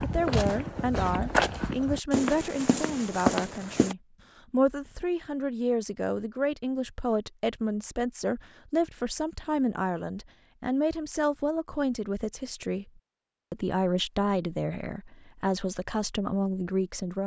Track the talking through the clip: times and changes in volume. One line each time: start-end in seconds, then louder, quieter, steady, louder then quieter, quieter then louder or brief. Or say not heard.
0.0-17.2 steady.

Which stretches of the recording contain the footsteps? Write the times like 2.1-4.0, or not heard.
0.0-4.0.